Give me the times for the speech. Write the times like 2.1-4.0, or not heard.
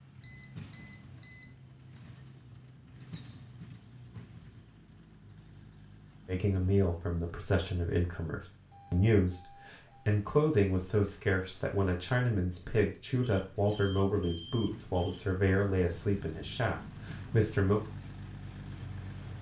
6.2-17.8.